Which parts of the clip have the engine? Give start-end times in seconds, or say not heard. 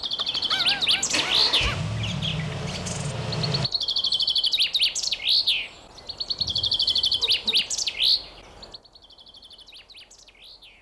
0.0-3.7.